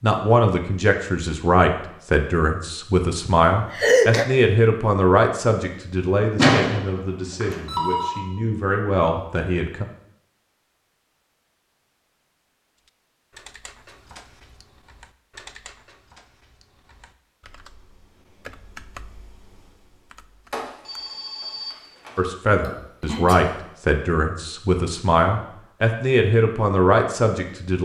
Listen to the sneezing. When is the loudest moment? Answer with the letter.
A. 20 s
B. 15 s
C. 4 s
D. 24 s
C.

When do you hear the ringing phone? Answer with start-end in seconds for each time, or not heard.
6.3-8.2, 20.5-22.2.